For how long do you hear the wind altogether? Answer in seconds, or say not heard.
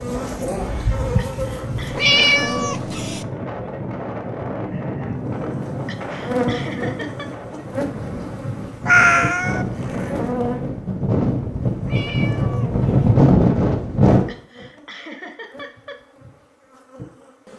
14 s.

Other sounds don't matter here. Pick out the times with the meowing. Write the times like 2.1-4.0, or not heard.
1.9-3.2, 8.8-9.7, 11.8-13.2.